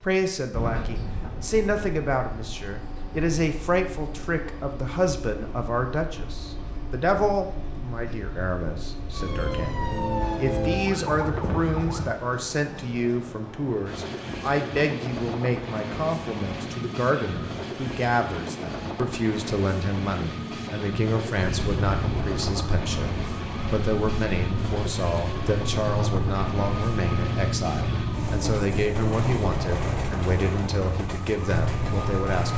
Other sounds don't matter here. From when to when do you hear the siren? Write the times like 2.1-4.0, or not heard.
9.1-12.2, 21.4-32.5.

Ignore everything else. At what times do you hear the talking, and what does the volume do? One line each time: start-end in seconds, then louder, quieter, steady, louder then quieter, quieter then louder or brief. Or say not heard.
0.0-32.5 steady.